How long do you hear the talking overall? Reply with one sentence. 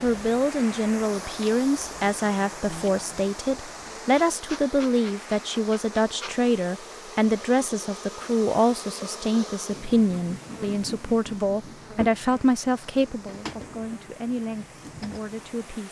The talking can be heard for 16 seconds in total.